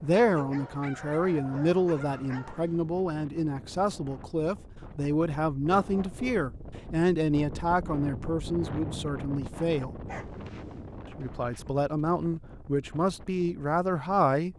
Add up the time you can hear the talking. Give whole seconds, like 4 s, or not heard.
13 s.